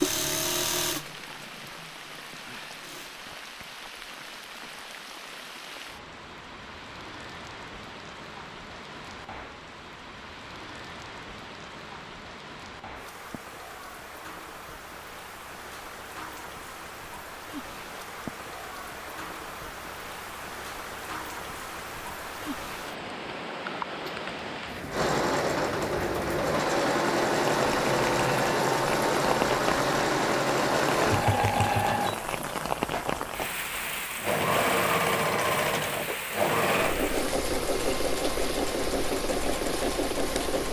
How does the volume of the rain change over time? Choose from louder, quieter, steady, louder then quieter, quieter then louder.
louder.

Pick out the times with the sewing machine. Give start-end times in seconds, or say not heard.
0.0-3.1, 24.9-40.6.